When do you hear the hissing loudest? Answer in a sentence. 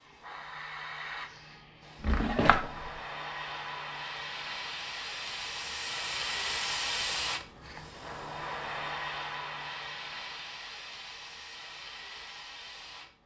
The loudest moment of the hissing is at 7 seconds.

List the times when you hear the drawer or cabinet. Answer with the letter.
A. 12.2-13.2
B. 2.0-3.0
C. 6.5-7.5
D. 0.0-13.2
B.